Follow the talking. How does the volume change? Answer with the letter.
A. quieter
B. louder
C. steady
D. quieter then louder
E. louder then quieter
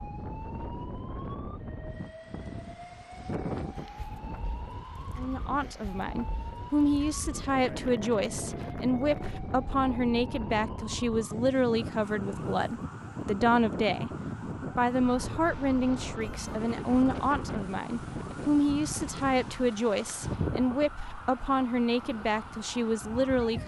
C.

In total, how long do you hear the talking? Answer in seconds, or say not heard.
18 s.